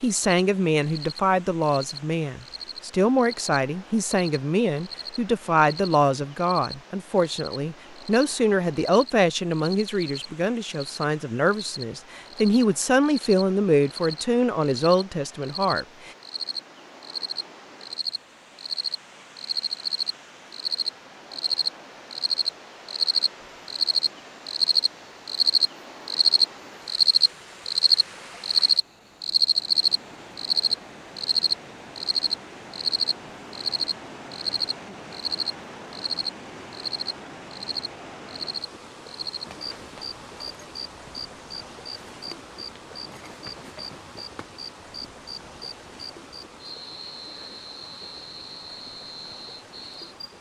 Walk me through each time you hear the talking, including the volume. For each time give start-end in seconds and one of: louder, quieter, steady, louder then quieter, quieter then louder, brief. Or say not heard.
0.0-16.1 steady.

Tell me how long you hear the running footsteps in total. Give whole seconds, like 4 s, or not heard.
not heard.